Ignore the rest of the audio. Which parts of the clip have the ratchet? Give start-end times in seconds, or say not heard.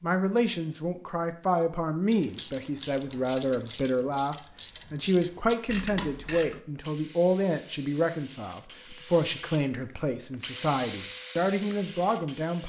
2.1-6.6.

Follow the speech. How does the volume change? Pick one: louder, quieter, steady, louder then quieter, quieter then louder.
steady.